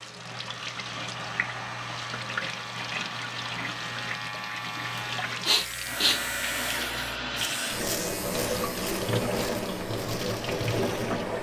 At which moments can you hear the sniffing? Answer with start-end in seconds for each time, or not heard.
5.0-6.3.